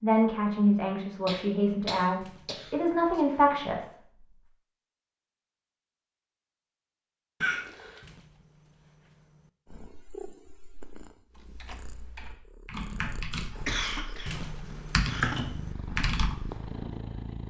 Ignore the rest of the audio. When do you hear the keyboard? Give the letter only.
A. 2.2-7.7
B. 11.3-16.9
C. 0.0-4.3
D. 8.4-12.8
B.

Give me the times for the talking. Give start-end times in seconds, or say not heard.
0.0-4.3.